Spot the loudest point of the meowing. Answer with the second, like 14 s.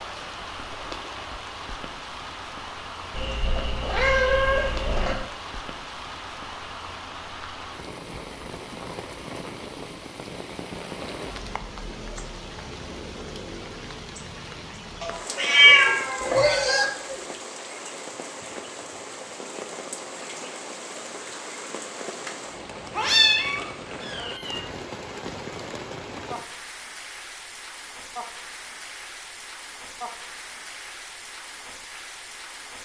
16 s.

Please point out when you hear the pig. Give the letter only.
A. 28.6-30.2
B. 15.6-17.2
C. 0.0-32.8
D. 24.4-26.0
B.